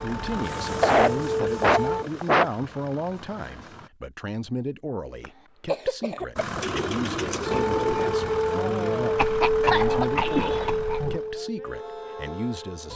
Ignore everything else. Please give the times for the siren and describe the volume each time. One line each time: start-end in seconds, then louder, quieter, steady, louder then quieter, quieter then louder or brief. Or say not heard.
0.0-2.0 brief
7.5-12.9 quieter.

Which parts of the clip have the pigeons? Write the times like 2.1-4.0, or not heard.
6.6-8.2.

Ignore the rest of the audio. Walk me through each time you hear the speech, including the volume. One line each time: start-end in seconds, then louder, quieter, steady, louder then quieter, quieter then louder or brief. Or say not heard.
0.0-12.9 steady.